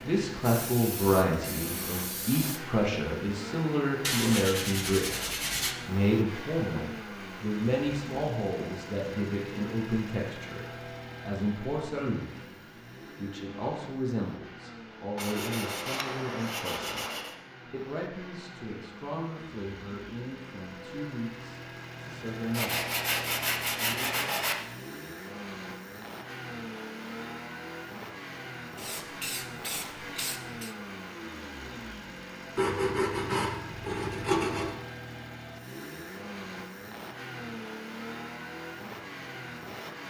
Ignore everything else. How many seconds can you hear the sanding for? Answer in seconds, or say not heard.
8 s.